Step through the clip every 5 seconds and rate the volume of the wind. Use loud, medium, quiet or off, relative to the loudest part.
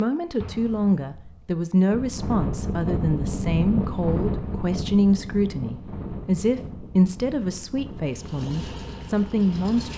loud, medium.